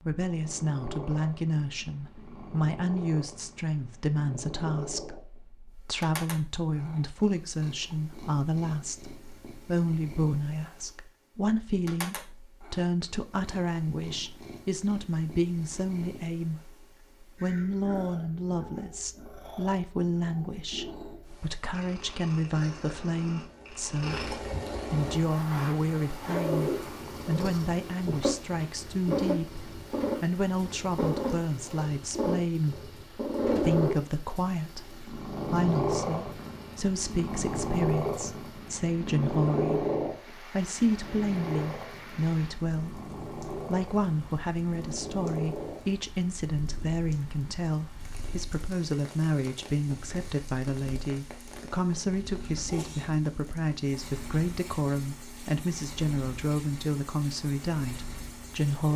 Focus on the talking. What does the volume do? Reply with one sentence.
The loudness of the talking stays about the same.